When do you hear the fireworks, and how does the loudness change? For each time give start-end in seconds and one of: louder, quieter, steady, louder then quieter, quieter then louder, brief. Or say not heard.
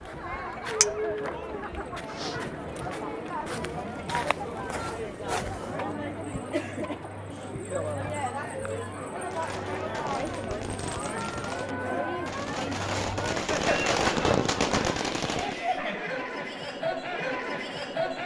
9.2-15.7 louder.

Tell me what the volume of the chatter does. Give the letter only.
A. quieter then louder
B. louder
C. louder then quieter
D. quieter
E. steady
E.